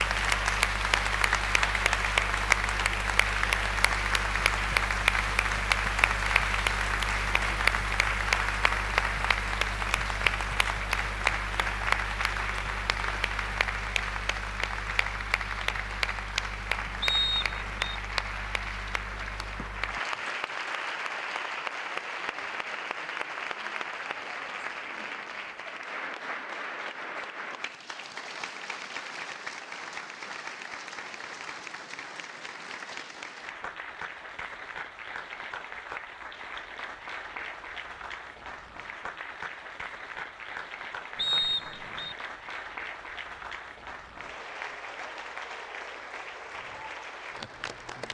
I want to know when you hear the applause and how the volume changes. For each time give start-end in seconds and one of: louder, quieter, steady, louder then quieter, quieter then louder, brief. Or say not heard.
0.0-48.1 quieter.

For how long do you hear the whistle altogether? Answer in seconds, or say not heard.
2 s.